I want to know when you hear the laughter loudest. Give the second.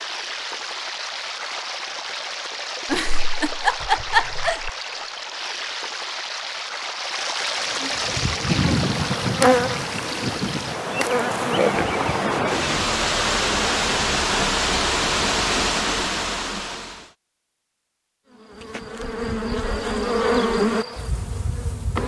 4 s.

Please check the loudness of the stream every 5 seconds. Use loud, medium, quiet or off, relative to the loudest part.
medium, medium, loud, loud, off.